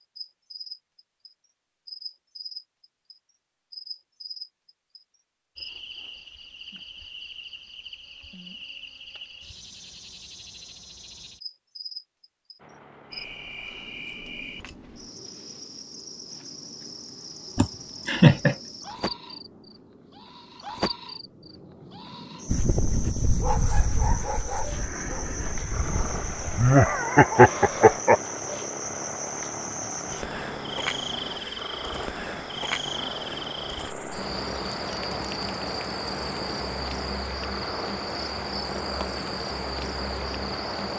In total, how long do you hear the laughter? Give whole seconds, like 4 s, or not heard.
3 s.